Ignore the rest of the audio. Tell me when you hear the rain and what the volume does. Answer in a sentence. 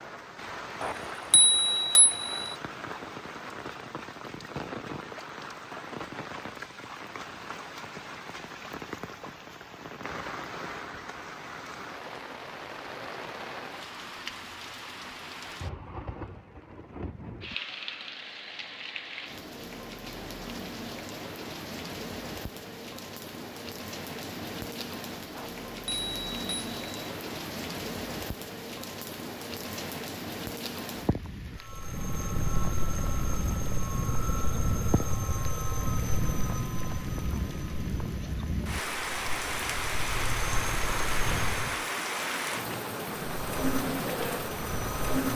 You can hear the rain from 0.0 to 45.3 s, getting louder.